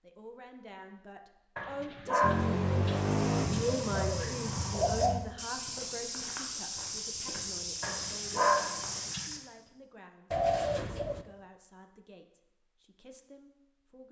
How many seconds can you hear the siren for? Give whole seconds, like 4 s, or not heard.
not heard.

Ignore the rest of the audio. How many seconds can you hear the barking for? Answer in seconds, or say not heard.
3 s.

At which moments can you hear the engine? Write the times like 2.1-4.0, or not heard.
2.2-5.2.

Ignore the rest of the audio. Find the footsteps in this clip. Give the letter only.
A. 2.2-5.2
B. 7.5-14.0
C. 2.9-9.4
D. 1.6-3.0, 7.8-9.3
C.